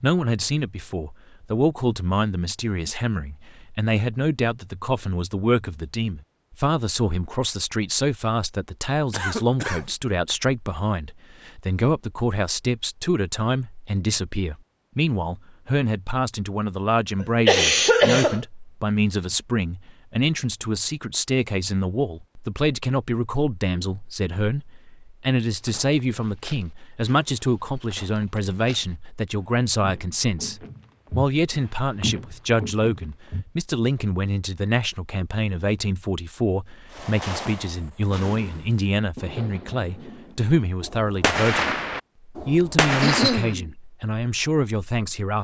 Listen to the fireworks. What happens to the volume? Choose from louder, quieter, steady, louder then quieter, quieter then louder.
quieter then louder.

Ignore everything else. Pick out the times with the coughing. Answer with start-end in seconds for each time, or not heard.
9.1-9.9, 17.2-18.4, 42.6-43.7.